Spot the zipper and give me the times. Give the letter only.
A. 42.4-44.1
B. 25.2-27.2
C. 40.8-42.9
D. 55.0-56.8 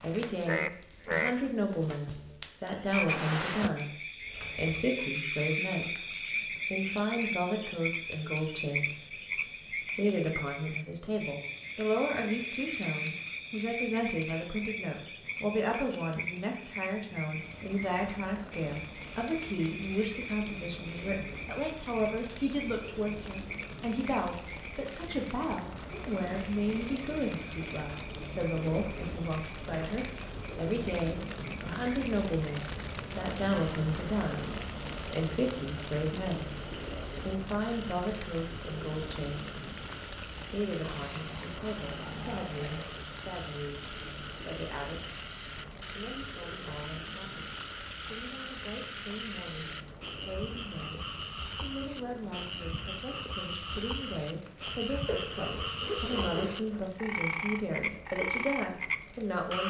D.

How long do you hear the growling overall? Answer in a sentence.
The growling can be heard for 2 seconds in total.